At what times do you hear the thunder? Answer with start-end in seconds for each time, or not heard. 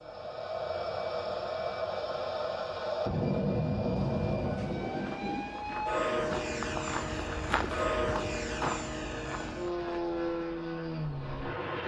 4.0-5.8.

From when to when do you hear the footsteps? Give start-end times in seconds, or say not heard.
5.0-10.4.